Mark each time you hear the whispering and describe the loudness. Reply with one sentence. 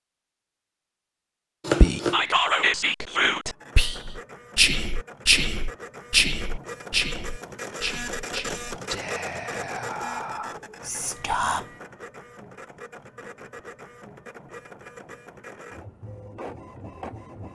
You can hear the whispering from 1.8 to 11.7 s, getting quieter.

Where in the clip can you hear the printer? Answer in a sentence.
You can hear the printer from 3.5 to 17.4 s.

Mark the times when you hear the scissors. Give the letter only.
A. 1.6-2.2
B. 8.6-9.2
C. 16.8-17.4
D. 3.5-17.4
A.